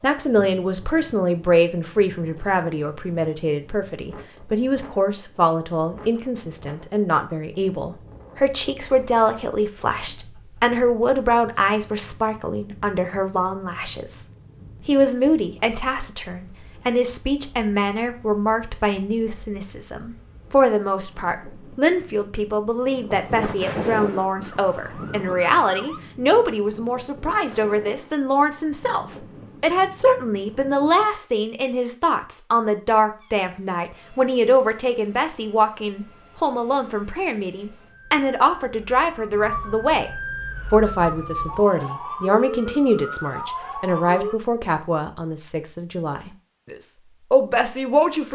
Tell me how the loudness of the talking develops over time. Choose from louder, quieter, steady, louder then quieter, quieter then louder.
steady.